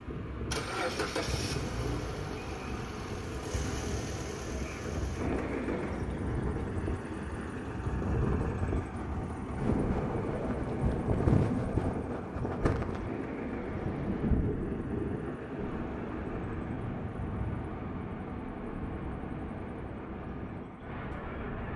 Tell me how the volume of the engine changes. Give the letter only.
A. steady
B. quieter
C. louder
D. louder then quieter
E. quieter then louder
B.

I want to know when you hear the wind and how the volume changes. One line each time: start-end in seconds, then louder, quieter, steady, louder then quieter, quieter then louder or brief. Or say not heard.
0.0-21.7 louder then quieter.